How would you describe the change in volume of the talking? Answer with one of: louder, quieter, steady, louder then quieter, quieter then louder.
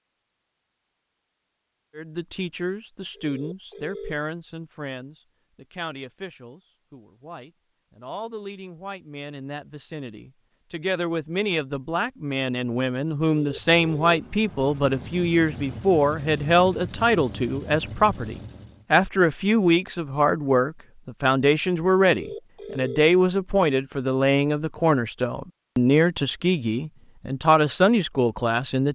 louder.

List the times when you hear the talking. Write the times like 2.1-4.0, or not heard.
1.9-28.9.